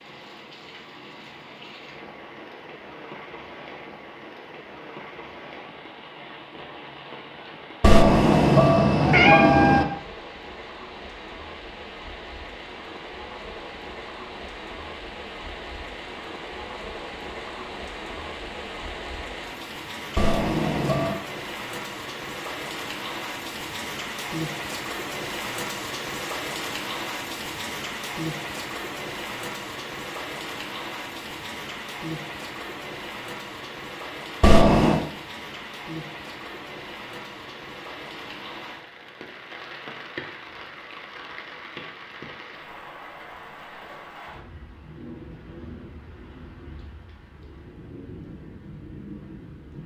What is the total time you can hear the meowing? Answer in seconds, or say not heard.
4 s.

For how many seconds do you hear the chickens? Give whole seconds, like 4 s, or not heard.
not heard.